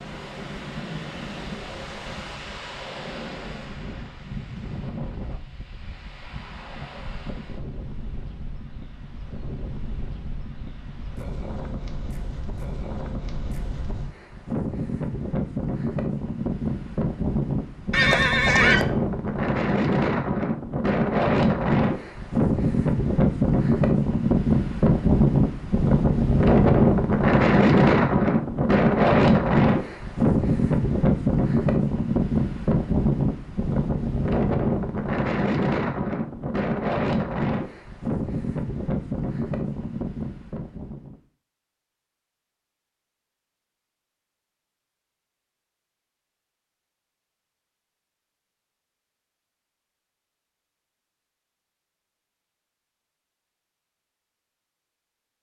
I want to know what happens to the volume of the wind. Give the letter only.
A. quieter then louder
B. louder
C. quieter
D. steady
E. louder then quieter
E.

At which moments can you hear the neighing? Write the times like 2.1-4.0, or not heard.
17.9-18.9.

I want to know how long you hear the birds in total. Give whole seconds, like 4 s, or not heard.
not heard.